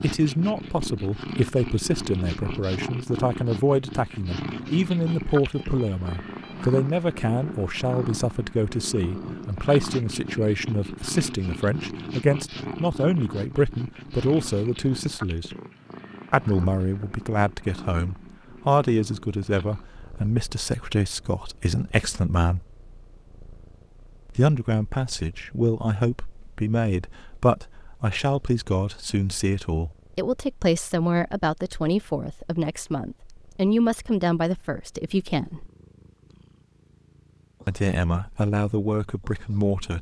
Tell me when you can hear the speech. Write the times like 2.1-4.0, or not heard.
0.0-15.6, 16.3-22.6, 24.3-35.7, 37.6-39.9.